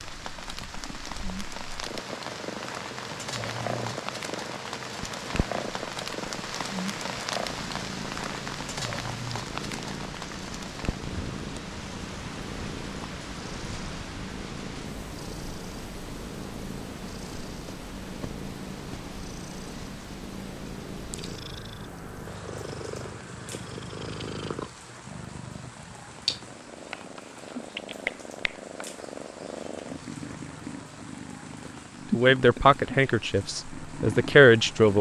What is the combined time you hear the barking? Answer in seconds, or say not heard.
not heard.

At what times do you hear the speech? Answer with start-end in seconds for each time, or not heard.
32.1-34.9.